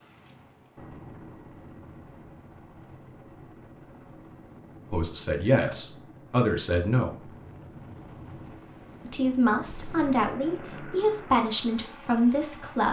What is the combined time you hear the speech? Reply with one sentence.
You can hear the speech for 6 seconds altogether.